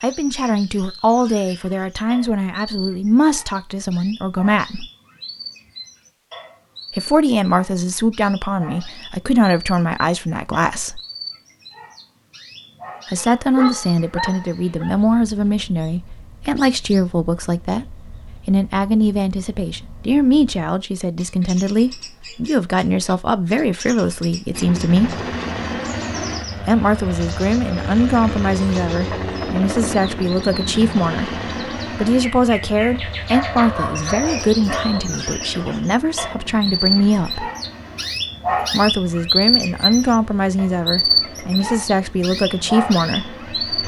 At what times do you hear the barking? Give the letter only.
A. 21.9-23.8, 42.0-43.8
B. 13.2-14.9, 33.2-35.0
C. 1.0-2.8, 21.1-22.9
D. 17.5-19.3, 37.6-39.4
B.